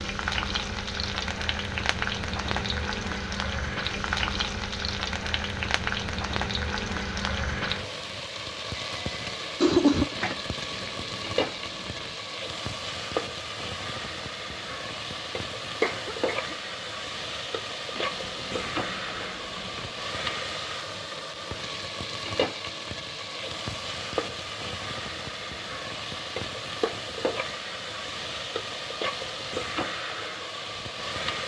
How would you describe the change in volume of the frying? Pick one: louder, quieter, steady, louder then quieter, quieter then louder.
steady.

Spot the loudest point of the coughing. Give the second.
10 s.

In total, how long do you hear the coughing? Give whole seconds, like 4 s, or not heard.
2 s.